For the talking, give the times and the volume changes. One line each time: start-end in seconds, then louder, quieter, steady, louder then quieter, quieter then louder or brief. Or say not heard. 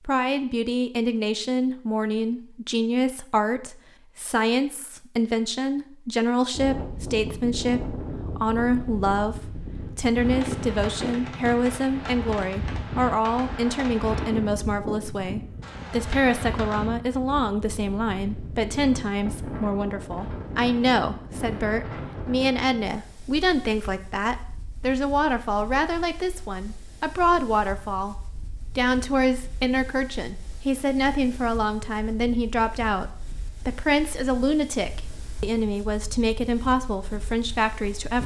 0.1-38.2 steady.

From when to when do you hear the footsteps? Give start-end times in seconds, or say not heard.
not heard.